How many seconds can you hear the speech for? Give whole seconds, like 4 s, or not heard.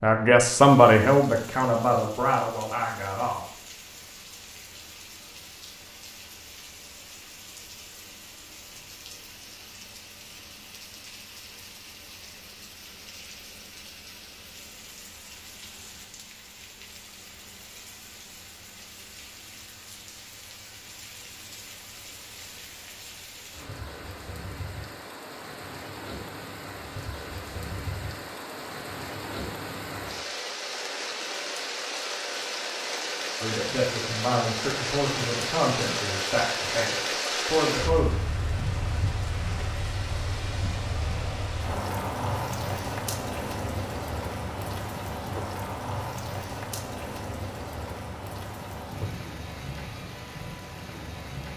8 s.